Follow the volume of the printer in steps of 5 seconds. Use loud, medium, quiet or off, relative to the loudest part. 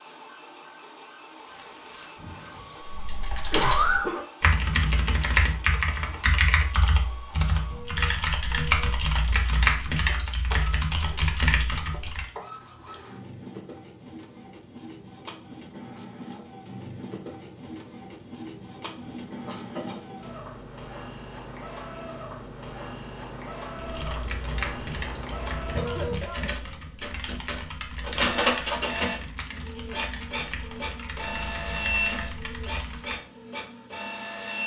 quiet, quiet, quiet, medium, medium, loud, loud.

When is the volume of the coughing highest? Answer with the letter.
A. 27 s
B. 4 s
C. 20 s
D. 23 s
B.